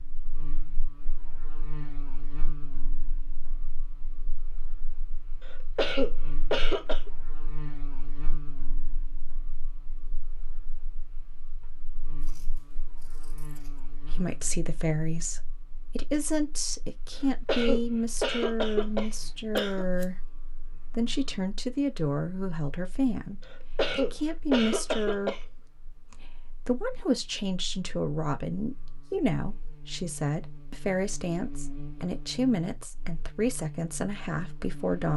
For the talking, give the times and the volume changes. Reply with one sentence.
You can hear the talking from 14.1 to 35.1 s, at a steady volume.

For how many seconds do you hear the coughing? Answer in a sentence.
You can hear the coughing for 6 seconds altogether.